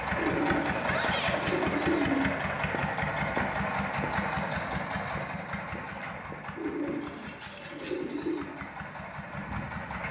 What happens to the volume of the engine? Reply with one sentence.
The loudness of the engine goes down.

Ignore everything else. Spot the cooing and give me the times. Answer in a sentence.
The cooing can be heard from 0.1 to 2.3 s and from 6.5 to 8.6 s.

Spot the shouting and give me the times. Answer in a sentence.
You can hear the shouting from 0.8 to 1.4 s.